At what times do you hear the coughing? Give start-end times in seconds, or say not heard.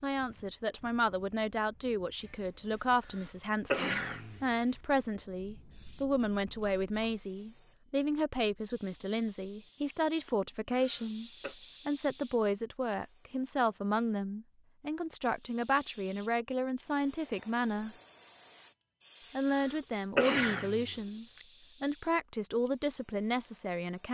3.1-5.0, 10.8-11.6, 19.6-21.4.